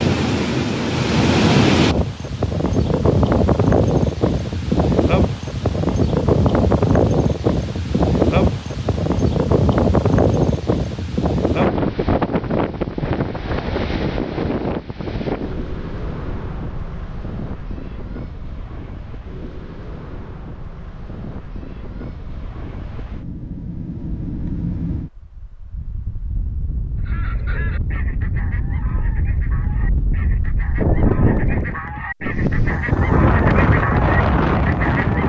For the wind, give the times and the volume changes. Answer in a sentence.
The wind can be heard from 0.0 to 35.2 s, getting quieter then louder.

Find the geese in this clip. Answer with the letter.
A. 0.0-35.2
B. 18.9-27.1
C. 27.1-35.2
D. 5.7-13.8
C.